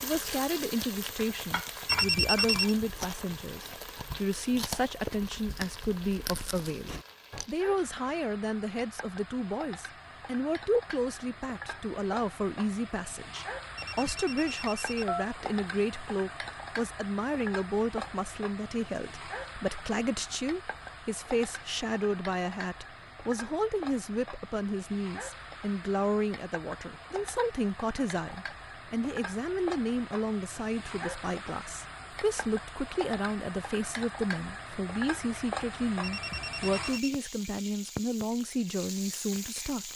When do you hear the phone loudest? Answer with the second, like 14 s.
2 s.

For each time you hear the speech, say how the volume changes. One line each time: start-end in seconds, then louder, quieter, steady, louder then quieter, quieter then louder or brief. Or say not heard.
0.0-39.9 steady.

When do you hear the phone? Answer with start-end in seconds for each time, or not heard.
1.9-2.8, 13.8-15.2, 36.0-37.1.